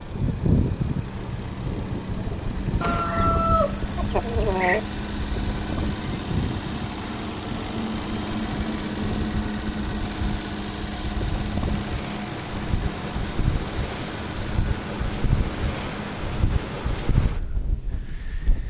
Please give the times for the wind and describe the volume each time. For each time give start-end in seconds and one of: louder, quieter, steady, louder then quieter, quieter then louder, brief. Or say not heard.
0.0-18.6 quieter then louder.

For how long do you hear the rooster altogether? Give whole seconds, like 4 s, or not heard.
2 s.